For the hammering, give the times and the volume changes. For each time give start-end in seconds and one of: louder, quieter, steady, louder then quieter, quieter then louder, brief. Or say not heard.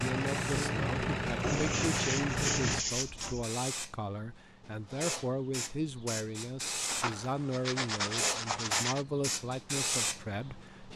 not heard.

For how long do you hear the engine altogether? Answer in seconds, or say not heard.
3 s.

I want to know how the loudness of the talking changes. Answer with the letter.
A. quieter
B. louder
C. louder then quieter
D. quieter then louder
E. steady
E.